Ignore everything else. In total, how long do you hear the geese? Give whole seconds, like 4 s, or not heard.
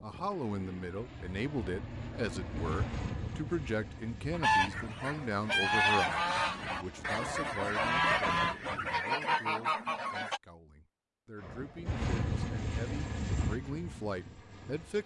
6 s.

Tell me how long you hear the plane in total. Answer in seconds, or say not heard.
13 s.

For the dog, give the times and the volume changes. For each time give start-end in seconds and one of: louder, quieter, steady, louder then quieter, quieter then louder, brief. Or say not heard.
not heard.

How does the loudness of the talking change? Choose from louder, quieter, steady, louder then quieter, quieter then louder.
quieter then louder.